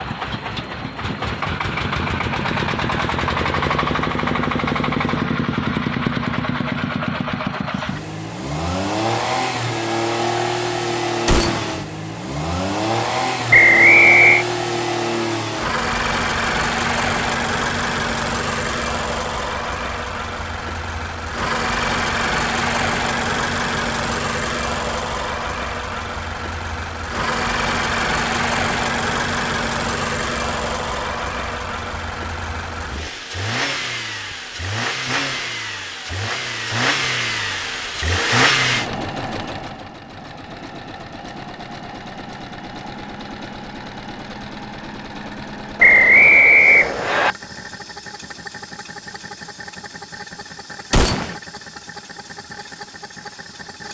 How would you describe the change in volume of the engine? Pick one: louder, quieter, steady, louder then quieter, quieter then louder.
quieter.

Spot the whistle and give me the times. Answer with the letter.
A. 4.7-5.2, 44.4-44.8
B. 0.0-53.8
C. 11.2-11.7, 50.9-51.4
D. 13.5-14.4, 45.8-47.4
D.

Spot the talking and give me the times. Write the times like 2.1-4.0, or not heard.
not heard.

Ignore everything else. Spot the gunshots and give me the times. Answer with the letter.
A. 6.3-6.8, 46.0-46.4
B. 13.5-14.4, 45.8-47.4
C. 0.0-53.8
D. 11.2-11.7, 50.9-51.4
D.